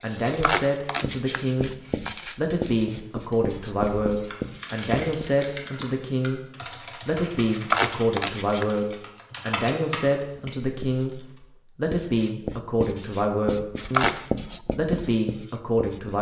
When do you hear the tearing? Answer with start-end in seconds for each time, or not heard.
0.2-2.4, 7.5-8.7, 13.8-14.2.